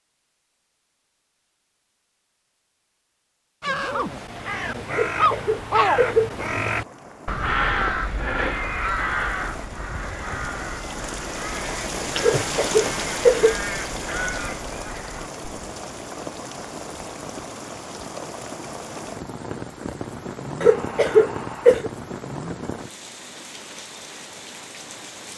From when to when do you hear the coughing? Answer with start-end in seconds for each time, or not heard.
4.9-6.3, 12.2-13.6, 20.6-21.9.